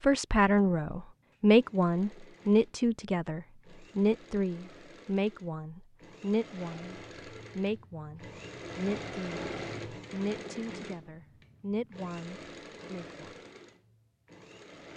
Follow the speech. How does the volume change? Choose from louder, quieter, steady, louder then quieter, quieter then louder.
quieter.